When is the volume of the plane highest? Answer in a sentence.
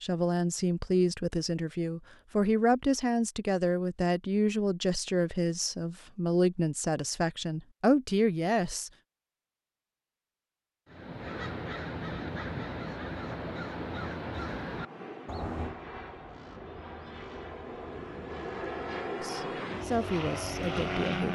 The volume of the plane peaks at 21 seconds.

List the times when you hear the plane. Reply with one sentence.
You can hear the plane from 14.7 to 21.3 s.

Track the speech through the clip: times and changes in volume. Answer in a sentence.
You can hear the speech from 0.0 to 8.9 s, at a steady volume; and briefly from 19.2 to 21.3 s.